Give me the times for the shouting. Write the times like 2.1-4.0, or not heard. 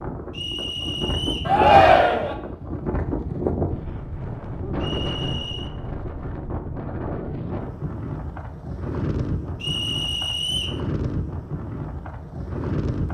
1.4-2.4.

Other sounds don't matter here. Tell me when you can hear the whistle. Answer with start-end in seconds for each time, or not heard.
0.3-1.6, 4.8-5.7, 9.6-10.8.